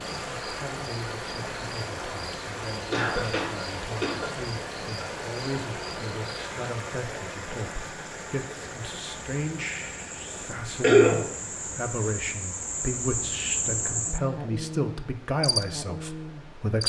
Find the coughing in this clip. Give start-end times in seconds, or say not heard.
2.9-4.2, 10.8-11.2.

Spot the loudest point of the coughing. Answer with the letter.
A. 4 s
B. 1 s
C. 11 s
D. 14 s
C.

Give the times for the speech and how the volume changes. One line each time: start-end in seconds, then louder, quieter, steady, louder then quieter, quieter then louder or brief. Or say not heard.
0.0-16.8 louder.